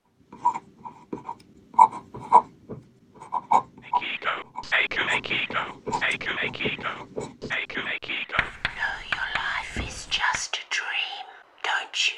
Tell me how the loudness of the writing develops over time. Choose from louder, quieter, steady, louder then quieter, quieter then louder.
quieter.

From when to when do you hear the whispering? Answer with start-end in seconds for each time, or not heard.
3.9-12.1.